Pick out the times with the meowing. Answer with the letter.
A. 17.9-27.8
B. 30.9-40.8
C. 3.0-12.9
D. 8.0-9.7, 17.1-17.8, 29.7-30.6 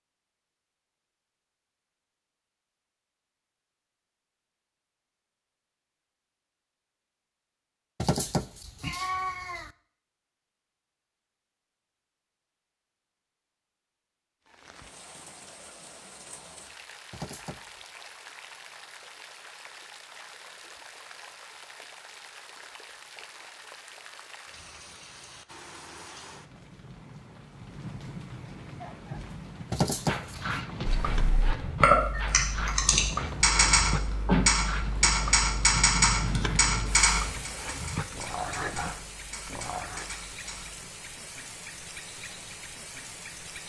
D.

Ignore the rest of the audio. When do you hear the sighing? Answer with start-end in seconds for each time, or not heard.
not heard.